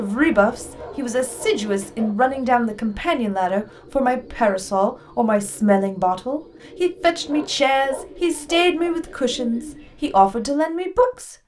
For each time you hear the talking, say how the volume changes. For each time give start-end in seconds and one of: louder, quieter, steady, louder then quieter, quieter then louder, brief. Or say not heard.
0.0-11.3 steady.